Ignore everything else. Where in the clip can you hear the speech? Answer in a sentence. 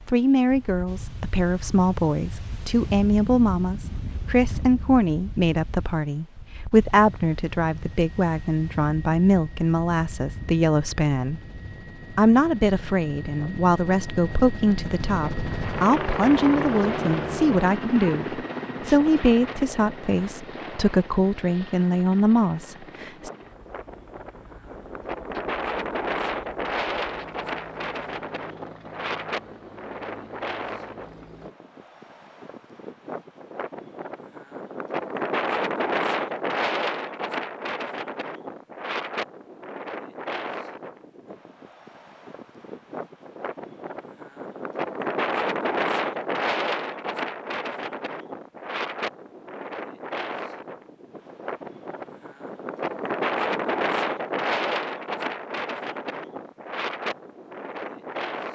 The speech can be heard from 0.1 to 11.4 s and from 12.2 to 23.3 s.